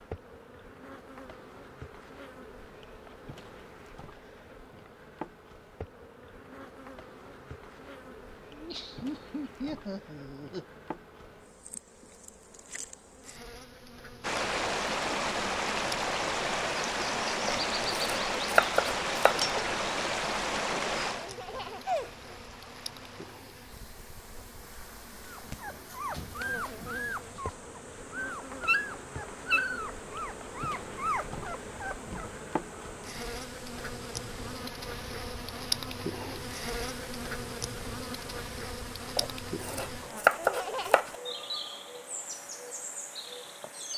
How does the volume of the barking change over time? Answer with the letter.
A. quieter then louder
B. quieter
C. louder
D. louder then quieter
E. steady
D.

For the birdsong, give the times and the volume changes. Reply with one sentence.
You can't hear the birdsong here.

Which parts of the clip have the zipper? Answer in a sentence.
The zipper can't be heard in this clip.